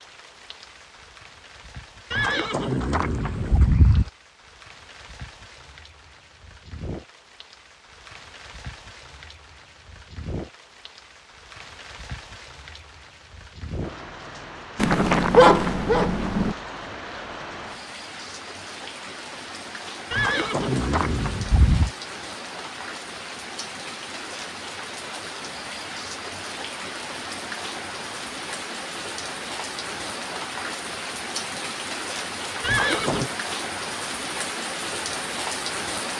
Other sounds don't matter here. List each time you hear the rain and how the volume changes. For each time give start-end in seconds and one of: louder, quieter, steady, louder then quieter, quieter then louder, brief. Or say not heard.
0.0-36.1 louder.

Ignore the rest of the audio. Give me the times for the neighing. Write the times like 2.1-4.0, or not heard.
2.1-4.1, 20.1-21.9, 32.6-33.3.